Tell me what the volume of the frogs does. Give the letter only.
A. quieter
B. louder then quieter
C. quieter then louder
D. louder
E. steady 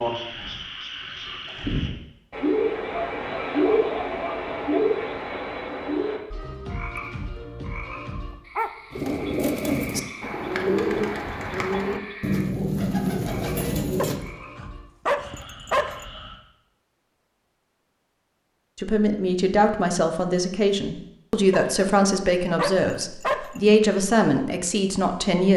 A.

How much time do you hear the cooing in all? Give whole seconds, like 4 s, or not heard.
5 s.